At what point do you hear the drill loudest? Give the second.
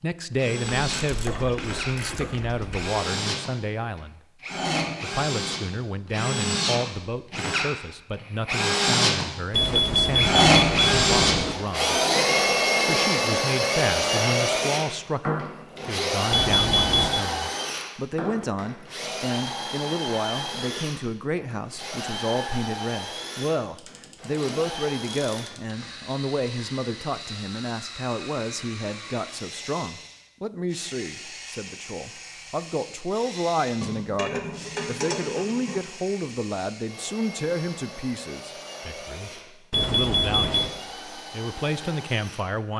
11 s.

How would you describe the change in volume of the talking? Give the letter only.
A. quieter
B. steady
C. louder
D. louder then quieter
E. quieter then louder
B.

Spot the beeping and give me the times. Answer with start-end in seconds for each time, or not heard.
9.5-11.6, 16.3-17.2, 39.7-40.8.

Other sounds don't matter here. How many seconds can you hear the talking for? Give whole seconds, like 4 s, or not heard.
41 s.